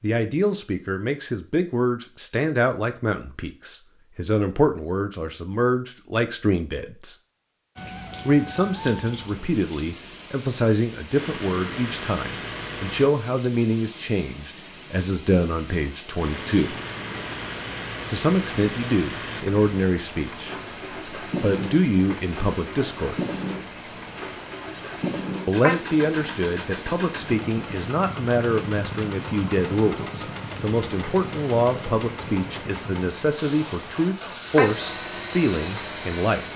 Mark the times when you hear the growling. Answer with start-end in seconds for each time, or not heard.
not heard.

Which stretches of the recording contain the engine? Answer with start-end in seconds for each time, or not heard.
11.1-13.1, 16.1-36.5.